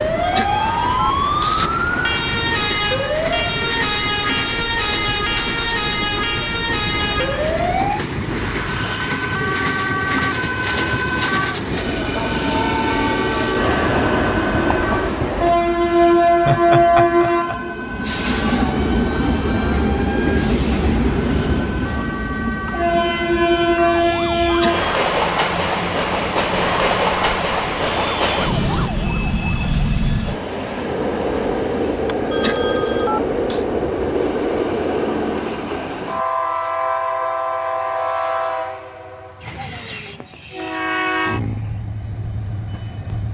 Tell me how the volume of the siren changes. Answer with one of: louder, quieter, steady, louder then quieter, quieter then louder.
quieter.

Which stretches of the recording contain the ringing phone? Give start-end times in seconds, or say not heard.
0.2-1.7, 24.4-25.1, 32.3-33.6.